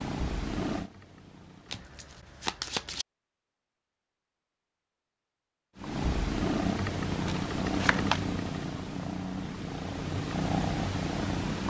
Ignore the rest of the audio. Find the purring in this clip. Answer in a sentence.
You can hear the purring from 0.0 to 1.9 s and from 5.8 to 11.6 s.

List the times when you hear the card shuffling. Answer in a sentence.
The card shuffling can be heard from 1.7 to 3.0 s and from 7.1 to 8.2 s.